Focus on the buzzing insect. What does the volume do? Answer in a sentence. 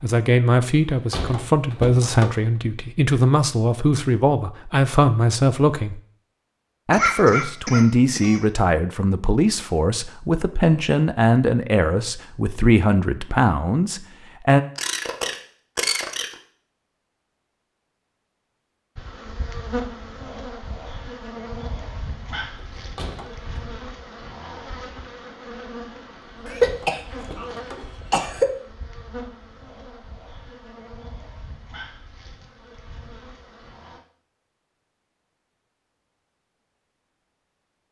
The loudness of the buzzing insect goes down.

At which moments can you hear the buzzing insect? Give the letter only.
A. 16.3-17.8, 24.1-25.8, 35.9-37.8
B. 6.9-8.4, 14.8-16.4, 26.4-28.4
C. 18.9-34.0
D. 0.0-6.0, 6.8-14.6
C.